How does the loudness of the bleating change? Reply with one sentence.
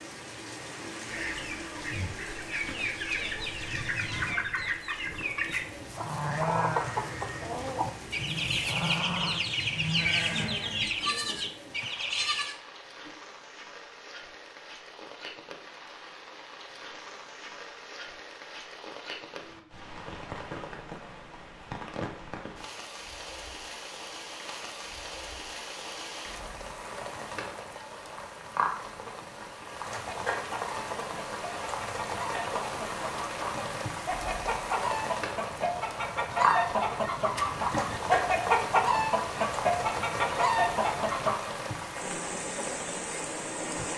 The loudness of the bleating goes down, then up.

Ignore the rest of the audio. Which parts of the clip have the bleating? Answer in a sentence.
The bleating can be heard from 5.0 to 13.1 s.